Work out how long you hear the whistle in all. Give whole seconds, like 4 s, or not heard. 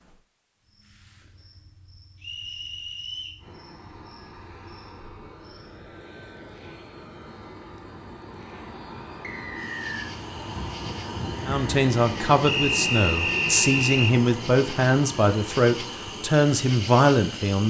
4 s.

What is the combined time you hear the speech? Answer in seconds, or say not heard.
6 s.